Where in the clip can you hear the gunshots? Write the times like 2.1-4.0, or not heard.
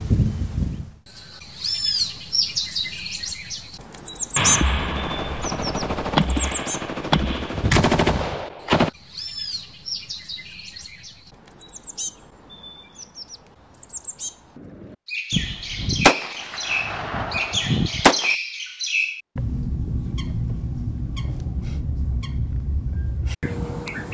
4.3-8.9, 15.3-18.4.